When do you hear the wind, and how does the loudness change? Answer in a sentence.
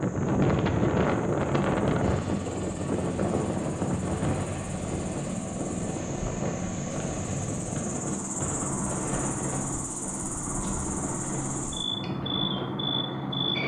The wind can be heard from 0.0 to 13.6 s, getting quieter.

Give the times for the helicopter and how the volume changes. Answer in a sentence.
You can hear the helicopter from 1.9 to 13.6 s, at a steady volume.